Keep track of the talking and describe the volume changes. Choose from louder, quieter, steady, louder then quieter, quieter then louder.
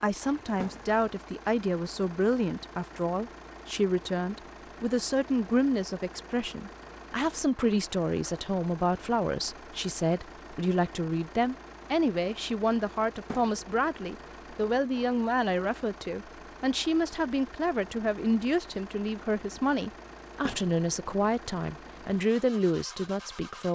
steady.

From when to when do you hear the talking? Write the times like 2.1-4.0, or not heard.
0.0-23.7.